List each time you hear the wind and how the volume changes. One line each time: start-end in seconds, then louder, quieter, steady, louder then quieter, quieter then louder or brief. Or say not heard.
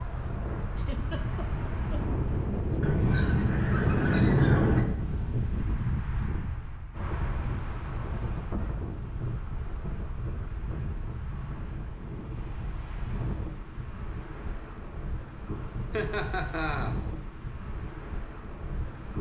0.0-19.1 quieter.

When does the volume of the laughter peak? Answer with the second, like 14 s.
16 s.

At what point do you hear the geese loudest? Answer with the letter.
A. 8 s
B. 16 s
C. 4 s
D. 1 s
C.